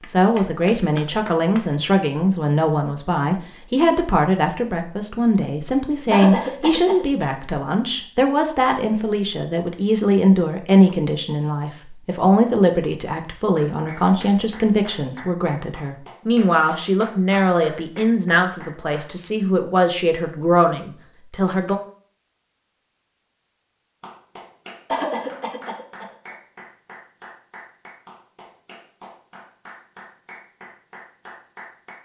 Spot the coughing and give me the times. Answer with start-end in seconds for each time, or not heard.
6.1-7.3, 24.9-26.4.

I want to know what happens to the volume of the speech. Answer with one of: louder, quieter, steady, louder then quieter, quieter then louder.
steady.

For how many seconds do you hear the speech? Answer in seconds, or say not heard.
22 s.